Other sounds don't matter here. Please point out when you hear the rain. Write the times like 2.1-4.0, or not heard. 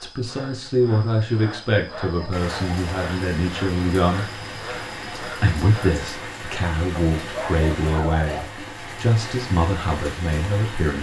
2.3-10.9.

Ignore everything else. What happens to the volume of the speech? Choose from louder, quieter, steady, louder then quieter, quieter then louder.
steady.